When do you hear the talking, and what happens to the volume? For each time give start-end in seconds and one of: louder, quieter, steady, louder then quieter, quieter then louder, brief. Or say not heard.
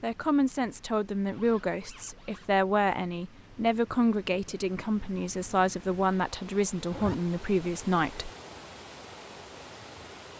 0.0-8.3 steady.